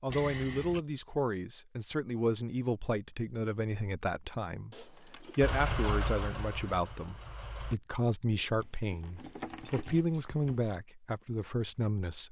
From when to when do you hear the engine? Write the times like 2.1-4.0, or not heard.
5.4-7.8.